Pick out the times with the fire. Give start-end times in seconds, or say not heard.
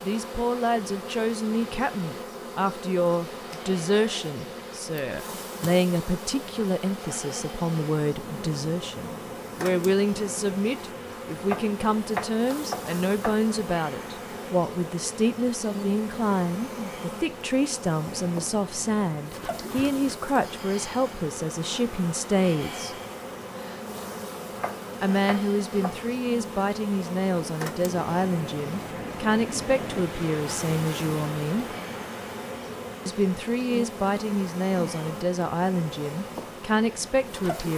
not heard.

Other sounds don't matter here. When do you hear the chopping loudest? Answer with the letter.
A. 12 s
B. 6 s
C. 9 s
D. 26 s
A.